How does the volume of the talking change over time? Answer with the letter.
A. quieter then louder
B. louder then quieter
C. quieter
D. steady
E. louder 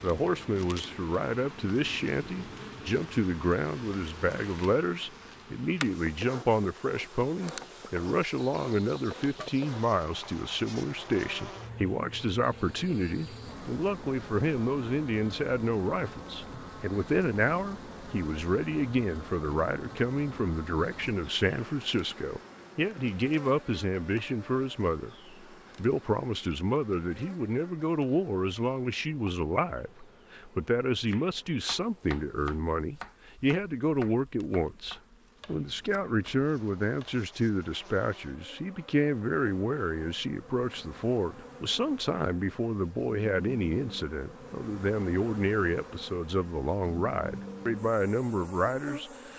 D.